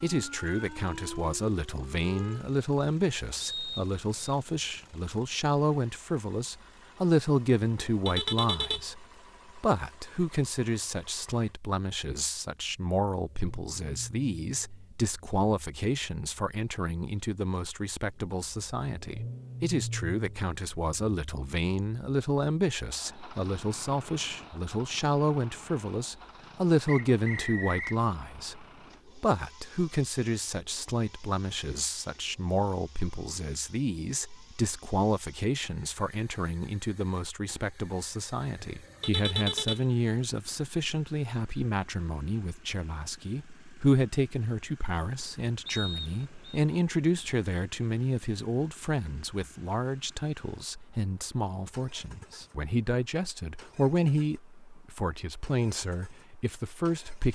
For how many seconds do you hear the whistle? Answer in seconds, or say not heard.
3 s.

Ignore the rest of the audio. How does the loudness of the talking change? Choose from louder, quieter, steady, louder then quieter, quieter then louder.
steady.